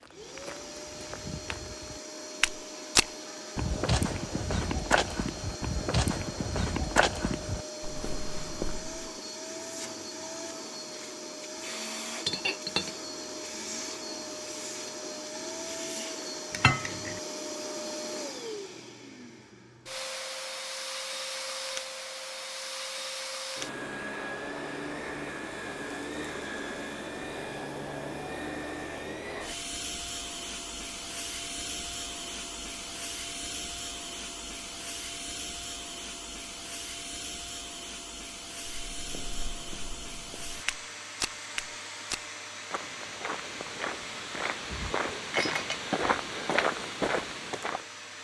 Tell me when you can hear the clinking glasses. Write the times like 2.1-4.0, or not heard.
12.2-12.9, 16.5-17.2, 44.7-45.8.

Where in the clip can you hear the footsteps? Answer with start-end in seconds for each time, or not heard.
0.0-9.1, 38.6-47.9.